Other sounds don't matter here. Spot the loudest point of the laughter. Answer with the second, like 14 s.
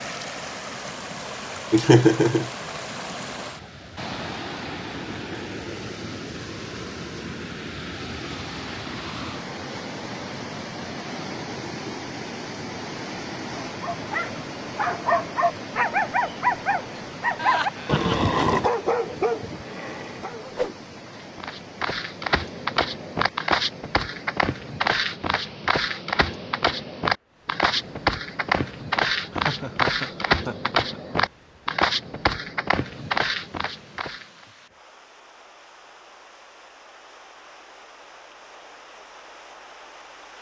2 s.